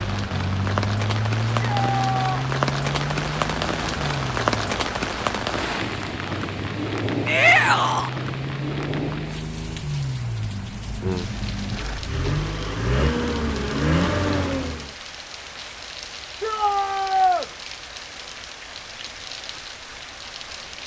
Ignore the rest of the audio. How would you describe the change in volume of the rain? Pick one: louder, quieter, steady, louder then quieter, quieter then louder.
quieter.